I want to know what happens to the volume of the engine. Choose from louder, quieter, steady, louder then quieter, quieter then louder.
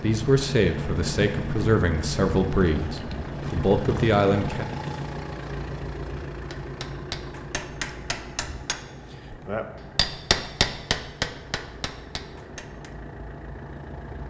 quieter.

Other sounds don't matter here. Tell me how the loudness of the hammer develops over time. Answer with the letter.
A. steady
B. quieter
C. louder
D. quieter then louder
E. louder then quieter
E.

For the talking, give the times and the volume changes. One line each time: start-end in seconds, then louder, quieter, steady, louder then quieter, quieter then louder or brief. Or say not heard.
0.0-4.7 quieter then louder.